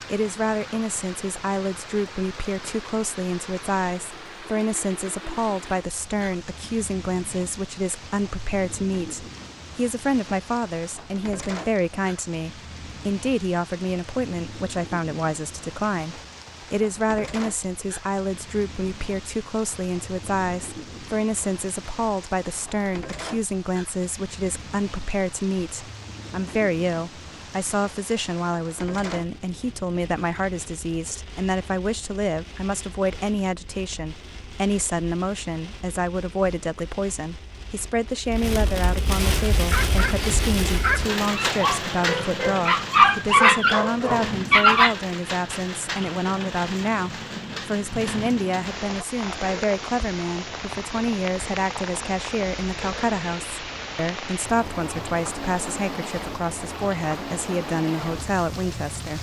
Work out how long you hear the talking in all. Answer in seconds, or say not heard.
59 s.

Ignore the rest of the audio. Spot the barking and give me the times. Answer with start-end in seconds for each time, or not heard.
39.6-45.0.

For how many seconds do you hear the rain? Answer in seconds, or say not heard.
59 s.